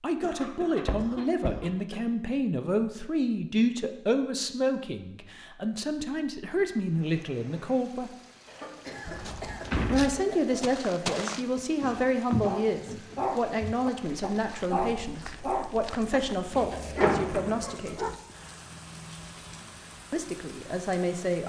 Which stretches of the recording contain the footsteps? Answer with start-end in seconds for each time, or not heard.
9.1-16.6.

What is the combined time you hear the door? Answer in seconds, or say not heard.
3 s.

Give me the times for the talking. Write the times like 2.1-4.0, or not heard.
0.0-8.1, 9.8-18.1, 20.1-21.4.